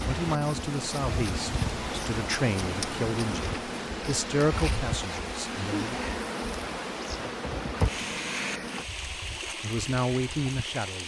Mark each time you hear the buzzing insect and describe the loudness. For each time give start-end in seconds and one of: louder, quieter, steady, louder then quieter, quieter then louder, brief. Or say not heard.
0.0-8.8 steady.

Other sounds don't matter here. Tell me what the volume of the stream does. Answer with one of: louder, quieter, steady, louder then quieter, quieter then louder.
steady.